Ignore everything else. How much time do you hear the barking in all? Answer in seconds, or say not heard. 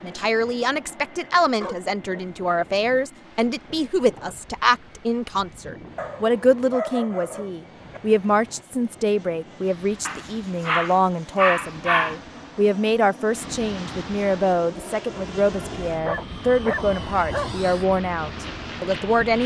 7 s.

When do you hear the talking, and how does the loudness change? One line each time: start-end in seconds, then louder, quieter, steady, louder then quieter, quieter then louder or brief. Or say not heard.
0.0-19.4 steady.